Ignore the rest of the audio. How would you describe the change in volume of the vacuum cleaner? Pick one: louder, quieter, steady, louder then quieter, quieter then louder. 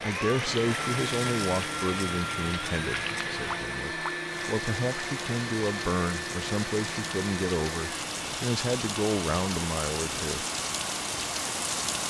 quieter.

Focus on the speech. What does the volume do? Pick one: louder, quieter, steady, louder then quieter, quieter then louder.
quieter then louder.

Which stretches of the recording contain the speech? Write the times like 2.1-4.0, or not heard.
0.1-10.4.